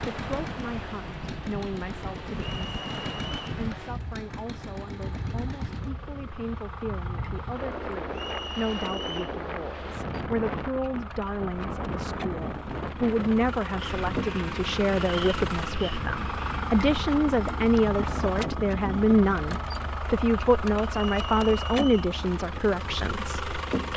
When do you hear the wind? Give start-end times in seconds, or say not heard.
0.0-19.4.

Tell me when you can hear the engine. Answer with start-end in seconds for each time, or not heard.
0.0-23.9.